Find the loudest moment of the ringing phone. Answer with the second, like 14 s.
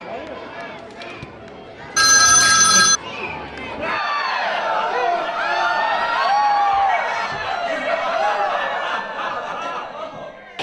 2 s.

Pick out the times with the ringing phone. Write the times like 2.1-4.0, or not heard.
1.9-3.0, 6.3-8.1.